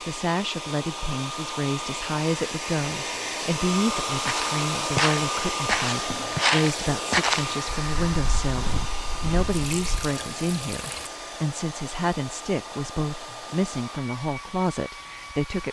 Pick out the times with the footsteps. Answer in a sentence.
The footsteps can be heard from 4.2 to 10.1 s.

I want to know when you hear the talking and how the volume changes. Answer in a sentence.
The talking can be heard from 0.1 to 15.6 s, at a steady volume.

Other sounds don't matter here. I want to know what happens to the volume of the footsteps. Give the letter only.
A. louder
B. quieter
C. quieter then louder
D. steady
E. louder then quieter
B.